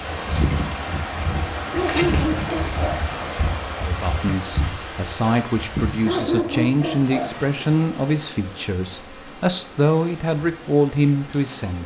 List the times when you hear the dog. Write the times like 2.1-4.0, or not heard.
1.7-3.0, 6.0-7.3.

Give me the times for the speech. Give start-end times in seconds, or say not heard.
3.8-11.8.